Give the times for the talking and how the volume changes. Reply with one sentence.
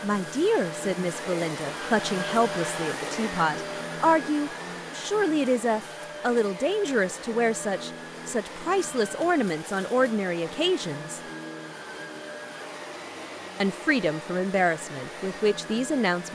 You can hear the talking from 0.0 to 11.2 s, at a steady volume; and briefly from 13.6 to 16.3 s.